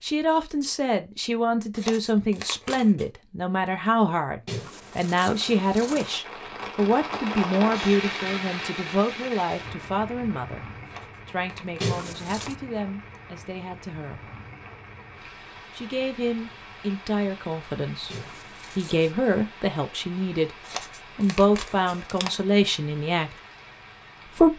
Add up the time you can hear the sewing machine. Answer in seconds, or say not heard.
not heard.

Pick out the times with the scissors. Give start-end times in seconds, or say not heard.
4.5-6.1, 11.8-12.6, 18.1-19.1.